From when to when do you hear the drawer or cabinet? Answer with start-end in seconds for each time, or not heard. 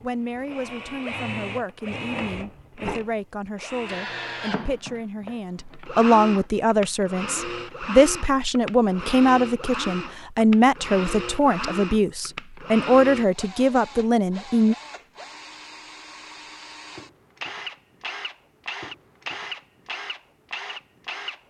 not heard.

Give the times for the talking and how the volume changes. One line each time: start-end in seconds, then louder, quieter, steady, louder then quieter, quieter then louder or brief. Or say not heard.
0.0-14.8 louder.